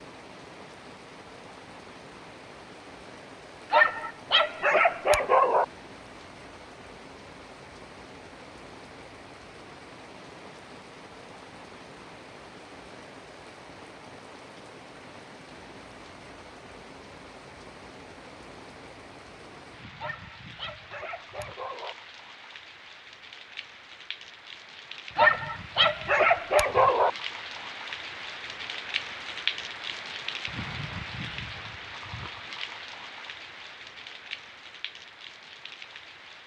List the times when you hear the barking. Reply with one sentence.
The barking can be heard from 3.7 to 5.7 s, from 19.9 to 21.9 s and from 25.1 to 27.1 s.